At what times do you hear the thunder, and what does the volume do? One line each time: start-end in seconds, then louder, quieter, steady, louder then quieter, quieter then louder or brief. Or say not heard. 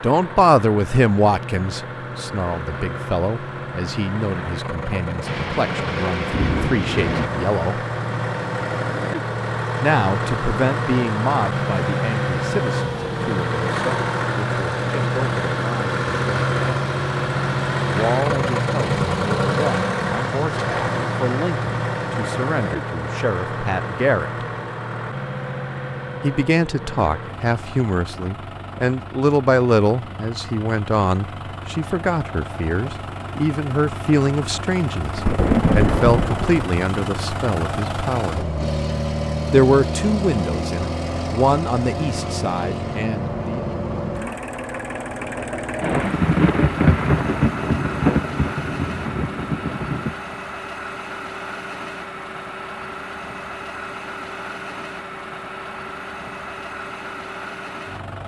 5.2-7.3 brief
35.1-36.6 brief
45.8-50.1 quieter.